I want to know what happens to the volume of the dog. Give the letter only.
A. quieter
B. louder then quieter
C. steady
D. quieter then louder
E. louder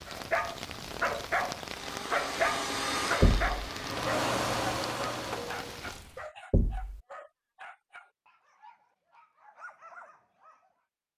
A.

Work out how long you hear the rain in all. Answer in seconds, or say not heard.
6 s.